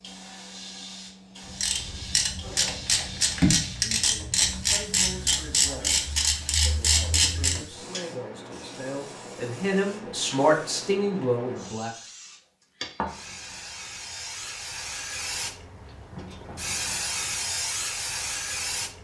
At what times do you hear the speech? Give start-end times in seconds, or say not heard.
3.9-12.1.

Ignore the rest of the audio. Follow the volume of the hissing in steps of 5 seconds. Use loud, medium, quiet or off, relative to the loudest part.
medium, medium, medium, loud.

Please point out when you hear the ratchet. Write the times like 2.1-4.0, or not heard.
1.4-8.0.